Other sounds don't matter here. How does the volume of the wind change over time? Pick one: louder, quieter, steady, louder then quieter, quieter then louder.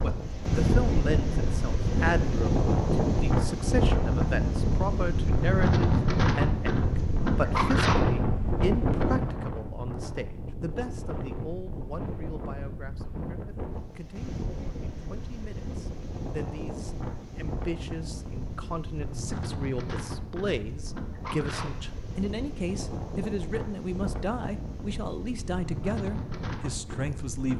quieter.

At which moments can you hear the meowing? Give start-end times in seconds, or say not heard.
not heard.